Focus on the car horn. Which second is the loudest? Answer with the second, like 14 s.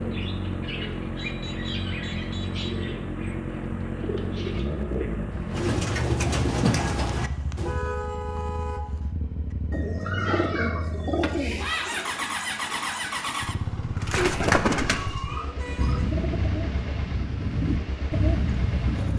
8 s.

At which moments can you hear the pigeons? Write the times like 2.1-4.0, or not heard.
0.0-7.8, 9.7-12.1, 14.0-19.1.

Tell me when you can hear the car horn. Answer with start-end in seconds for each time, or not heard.
0.9-2.7, 7.2-9.1, 15.4-16.2.